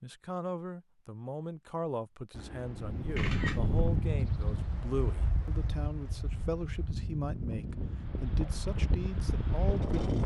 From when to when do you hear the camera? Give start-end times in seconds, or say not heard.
2.3-4.2.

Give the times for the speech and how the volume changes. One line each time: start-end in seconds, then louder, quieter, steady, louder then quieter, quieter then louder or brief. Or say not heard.
0.0-9.9 steady.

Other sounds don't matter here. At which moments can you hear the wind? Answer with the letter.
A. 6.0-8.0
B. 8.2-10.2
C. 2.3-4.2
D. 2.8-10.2
D.